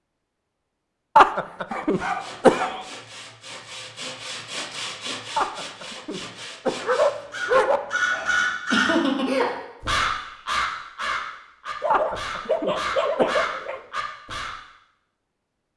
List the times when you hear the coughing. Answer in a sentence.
You can hear the coughing from 1.1 to 2.8 s, from 5.3 to 7.0 s and from 11.9 to 13.6 s.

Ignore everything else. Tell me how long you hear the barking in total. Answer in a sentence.
The barking can be heard for 4 seconds in total.